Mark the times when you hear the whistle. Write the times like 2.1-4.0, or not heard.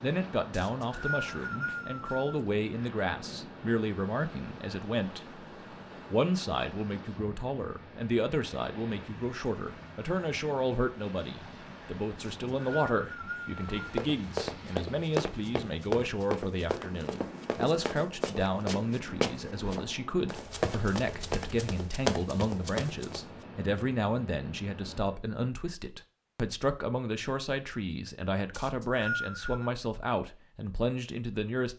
0.5-2.4, 12.2-13.8, 28.5-29.7.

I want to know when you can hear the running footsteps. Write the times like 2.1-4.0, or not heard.
13.6-23.2.